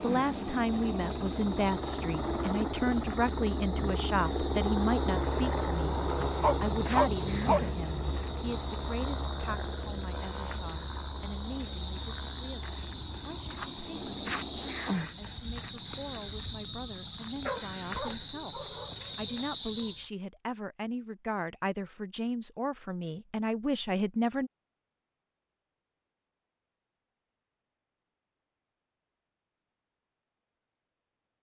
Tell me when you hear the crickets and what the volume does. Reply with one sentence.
You can hear the crickets from 0.0 to 20.1 s, getting louder.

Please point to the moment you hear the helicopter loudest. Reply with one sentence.
The loudest moment of the helicopter is at 5 seconds.